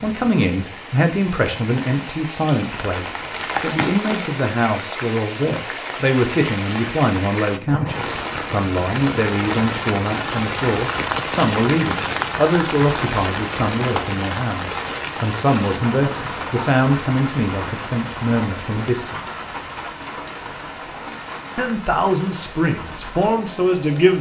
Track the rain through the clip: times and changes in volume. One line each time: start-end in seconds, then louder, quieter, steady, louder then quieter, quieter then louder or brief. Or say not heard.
0.0-24.1 louder then quieter.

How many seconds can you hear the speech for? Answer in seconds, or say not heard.
22 s.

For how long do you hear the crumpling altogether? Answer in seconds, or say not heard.
3 s.